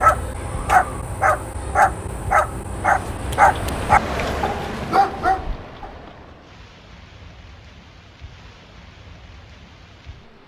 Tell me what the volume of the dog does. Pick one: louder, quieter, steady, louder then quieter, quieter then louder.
steady.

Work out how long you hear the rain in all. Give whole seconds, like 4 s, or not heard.
8 s.